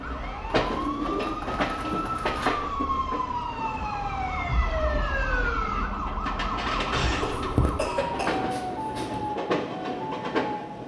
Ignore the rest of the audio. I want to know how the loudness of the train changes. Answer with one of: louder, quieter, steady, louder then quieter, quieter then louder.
quieter then louder.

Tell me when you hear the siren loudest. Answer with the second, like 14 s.
5 s.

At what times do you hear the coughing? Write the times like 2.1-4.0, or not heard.
7.2-8.4.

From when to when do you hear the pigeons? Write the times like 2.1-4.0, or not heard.
0.6-2.5, 6.9-9.3.